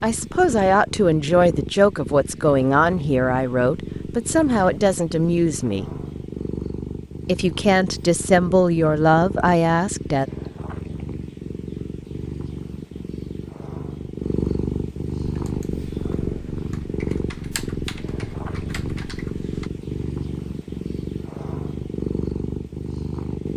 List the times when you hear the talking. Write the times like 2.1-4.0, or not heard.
0.0-5.8, 7.2-10.2.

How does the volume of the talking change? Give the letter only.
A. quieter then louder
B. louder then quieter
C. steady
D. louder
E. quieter
C.